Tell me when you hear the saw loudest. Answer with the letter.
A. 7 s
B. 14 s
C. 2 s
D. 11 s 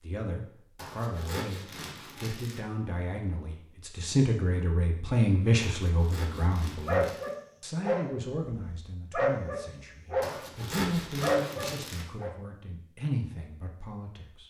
D.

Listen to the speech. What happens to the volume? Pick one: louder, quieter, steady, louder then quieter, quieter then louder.
louder then quieter.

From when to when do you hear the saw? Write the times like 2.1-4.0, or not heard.
0.8-2.6, 5.6-7.3, 10.2-12.1.